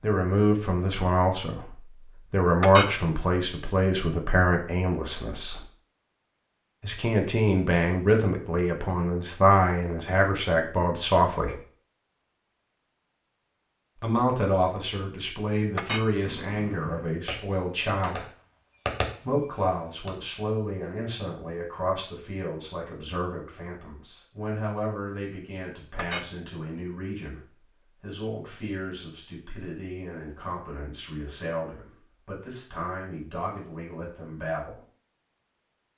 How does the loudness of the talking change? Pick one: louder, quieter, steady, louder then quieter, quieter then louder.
quieter.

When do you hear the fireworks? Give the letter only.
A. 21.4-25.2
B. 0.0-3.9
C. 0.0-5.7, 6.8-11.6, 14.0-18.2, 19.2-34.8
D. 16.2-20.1
D.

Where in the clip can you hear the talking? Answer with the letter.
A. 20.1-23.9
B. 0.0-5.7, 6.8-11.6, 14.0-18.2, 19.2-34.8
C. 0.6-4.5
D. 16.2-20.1
B.